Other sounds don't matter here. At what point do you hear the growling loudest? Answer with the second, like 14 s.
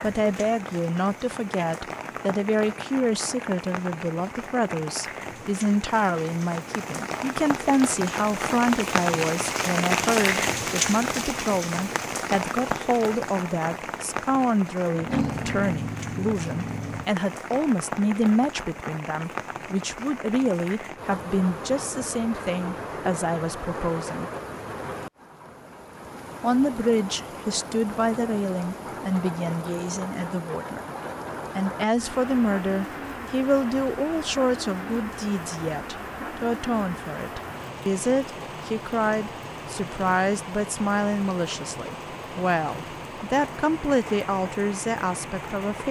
15 s.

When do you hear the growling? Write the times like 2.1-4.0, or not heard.
14.9-17.1.